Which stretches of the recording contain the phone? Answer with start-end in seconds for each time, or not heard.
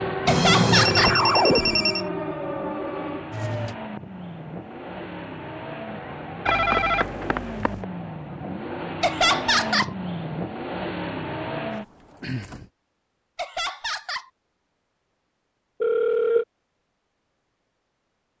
0.2-2.1, 6.5-7.8, 15.8-16.4.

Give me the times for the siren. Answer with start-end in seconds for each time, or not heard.
0.0-3.8.